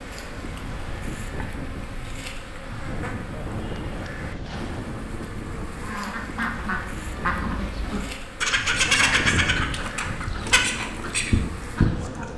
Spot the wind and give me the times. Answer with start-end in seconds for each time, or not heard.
0.0-12.3.